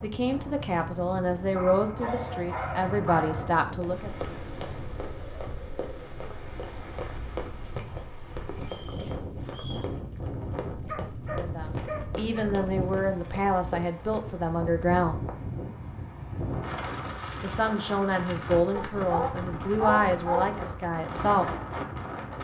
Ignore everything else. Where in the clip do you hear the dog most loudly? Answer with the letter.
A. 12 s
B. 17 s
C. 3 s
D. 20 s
D.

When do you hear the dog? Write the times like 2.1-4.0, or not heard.
1.6-3.5, 10.8-12.6, 18.7-20.4.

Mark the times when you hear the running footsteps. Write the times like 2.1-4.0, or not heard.
3.8-14.2.